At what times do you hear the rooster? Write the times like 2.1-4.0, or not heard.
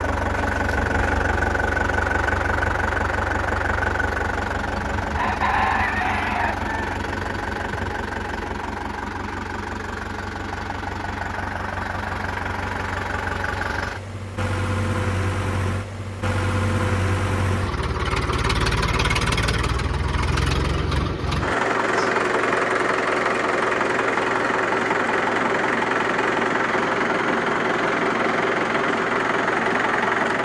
5.2-7.0.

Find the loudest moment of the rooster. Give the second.
6 s.